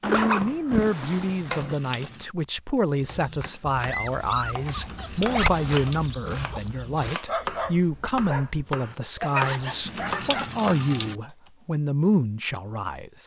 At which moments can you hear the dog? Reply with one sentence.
You can hear the dog from 2.9 to 10.6 s.